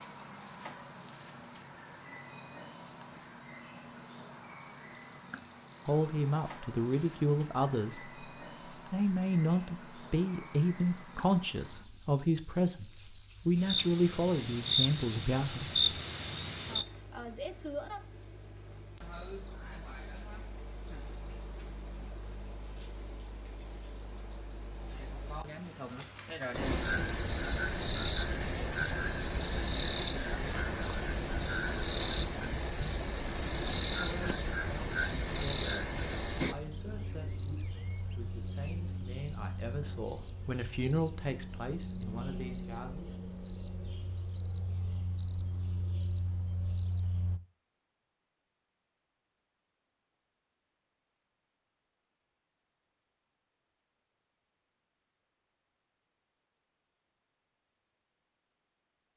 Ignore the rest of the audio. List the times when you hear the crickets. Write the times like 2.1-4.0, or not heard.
0.0-47.4.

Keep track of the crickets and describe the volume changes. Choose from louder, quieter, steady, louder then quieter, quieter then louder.
steady.